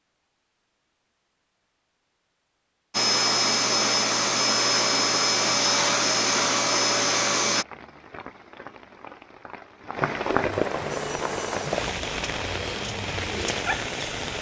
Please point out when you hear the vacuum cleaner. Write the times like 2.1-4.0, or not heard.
2.9-7.7, 10.8-14.3.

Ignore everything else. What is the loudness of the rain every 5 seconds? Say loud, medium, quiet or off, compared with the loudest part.
off, quiet, loud.